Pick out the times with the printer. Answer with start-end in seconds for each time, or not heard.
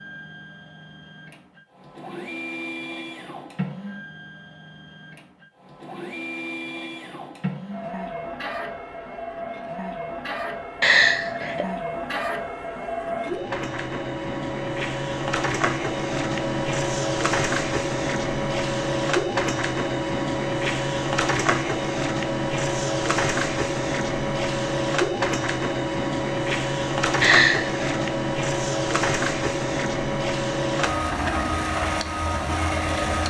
0.0-33.2.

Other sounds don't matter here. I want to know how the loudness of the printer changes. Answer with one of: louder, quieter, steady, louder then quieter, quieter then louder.
louder.